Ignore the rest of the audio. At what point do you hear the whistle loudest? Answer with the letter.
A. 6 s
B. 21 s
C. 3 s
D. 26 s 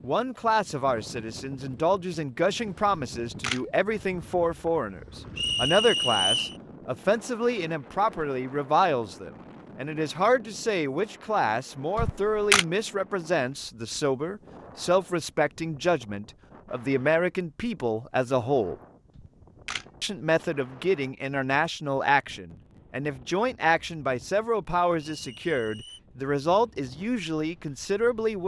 A.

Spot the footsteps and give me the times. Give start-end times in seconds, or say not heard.
not heard.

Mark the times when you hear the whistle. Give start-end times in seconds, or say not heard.
5.3-6.5, 25.1-26.0.